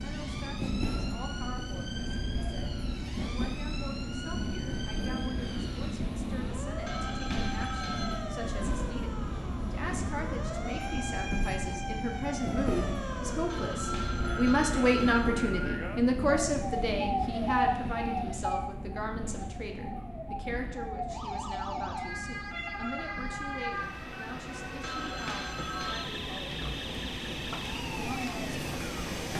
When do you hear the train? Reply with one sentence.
The train can be heard from 0.0 to 29.3 s.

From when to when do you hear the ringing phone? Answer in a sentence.
You can hear the ringing phone from 6.8 to 8.2 s, from 13.5 to 15.3 s and from 24.8 to 26.1 s.